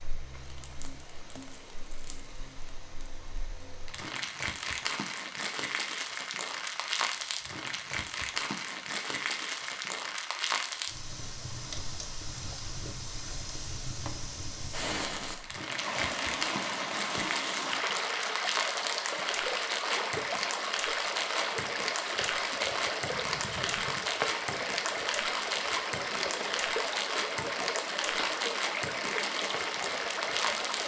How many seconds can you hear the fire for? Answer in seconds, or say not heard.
31 s.